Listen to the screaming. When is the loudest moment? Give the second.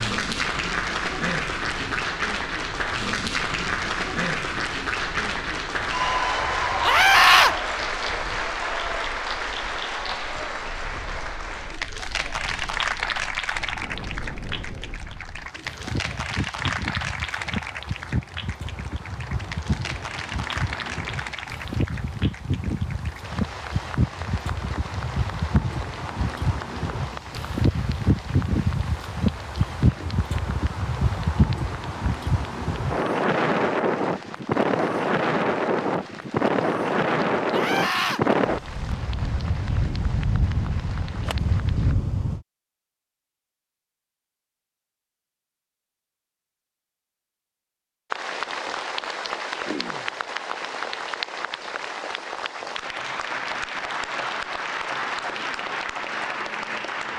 7 s.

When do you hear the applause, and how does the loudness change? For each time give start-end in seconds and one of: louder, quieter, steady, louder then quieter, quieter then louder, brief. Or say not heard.
0.0-42.0 quieter
48.1-57.1 steady.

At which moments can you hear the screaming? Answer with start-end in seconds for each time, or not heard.
6.8-7.5, 37.5-38.2.